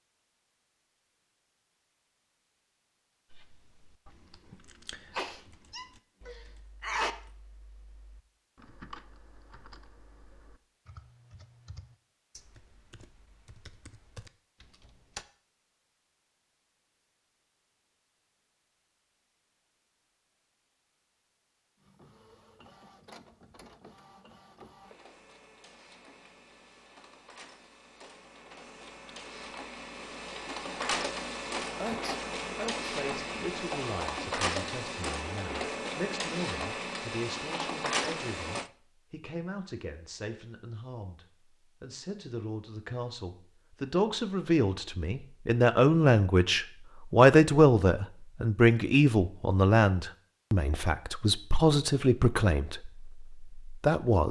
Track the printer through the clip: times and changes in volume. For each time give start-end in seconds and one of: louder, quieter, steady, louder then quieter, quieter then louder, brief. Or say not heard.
21.8-38.7 louder.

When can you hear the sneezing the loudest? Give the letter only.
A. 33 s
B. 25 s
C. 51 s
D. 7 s
D.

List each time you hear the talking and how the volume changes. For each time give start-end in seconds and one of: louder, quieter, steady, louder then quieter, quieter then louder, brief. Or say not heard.
32.9-54.2 louder then quieter.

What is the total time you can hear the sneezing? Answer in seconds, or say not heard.
3 s.